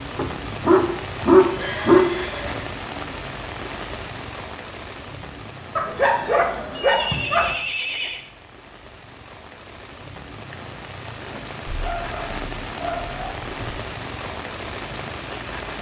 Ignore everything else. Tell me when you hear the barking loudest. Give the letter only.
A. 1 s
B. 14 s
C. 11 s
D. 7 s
A.